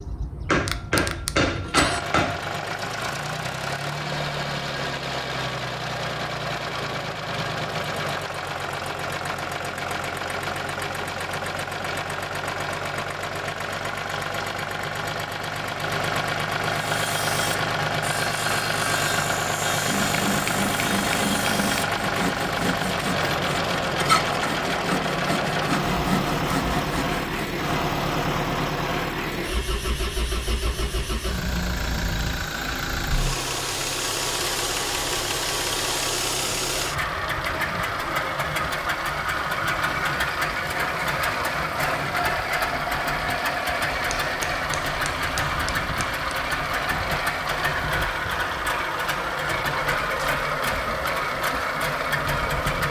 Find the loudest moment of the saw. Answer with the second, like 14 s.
24 s.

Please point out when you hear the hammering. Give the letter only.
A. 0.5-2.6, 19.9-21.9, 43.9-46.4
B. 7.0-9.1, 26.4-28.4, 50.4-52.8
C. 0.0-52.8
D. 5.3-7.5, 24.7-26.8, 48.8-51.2
A.